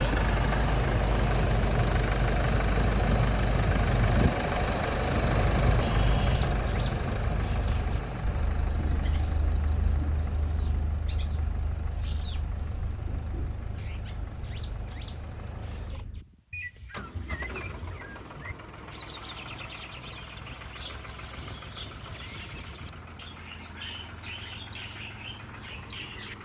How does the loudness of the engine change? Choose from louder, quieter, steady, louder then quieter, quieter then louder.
quieter.